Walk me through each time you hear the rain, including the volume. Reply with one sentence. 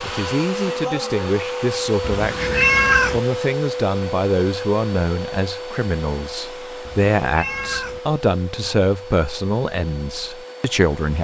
The rain can't be heard in this clip.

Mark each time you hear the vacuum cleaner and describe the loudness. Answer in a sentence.
You can hear the vacuum cleaner from 0.0 to 11.1 s, getting quieter.